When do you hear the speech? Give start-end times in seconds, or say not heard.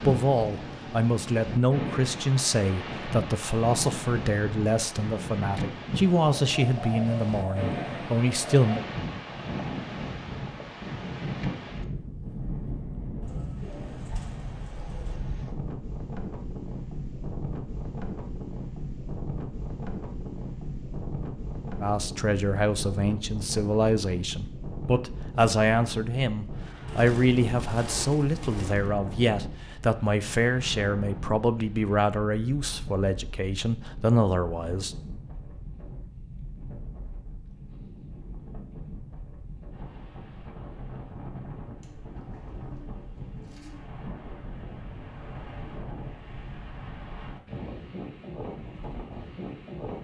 0.0-8.8, 21.8-35.0.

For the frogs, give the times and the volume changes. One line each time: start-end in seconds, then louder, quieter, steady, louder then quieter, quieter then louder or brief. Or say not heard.
not heard.